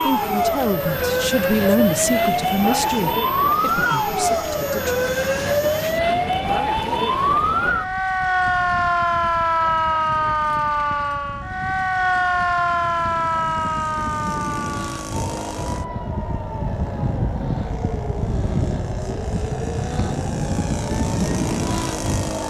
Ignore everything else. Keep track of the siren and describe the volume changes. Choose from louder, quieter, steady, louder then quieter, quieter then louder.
quieter.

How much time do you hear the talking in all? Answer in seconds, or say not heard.
5 s.